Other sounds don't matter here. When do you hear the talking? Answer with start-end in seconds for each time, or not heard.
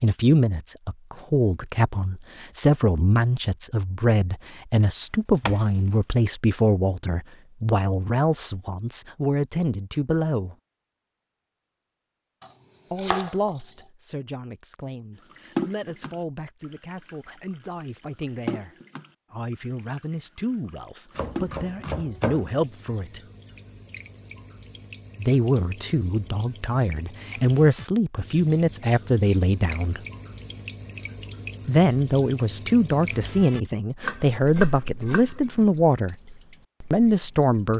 0.0-10.6, 12.9-23.2, 25.1-30.0, 31.6-36.1, 36.9-37.7.